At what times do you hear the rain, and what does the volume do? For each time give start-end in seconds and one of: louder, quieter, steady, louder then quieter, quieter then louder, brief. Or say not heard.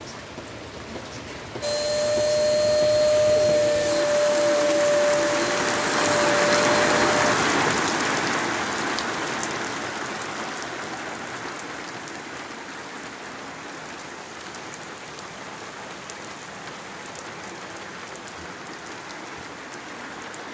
0.0-20.4 louder then quieter.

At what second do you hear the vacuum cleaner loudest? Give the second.
3 s.